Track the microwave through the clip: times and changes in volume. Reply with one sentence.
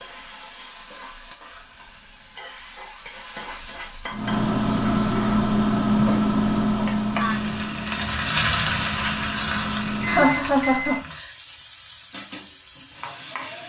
The microwave can be heard from 4.1 to 10.9 s, getting quieter then louder.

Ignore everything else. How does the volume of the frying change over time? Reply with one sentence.
The loudness of the frying goes up, then down.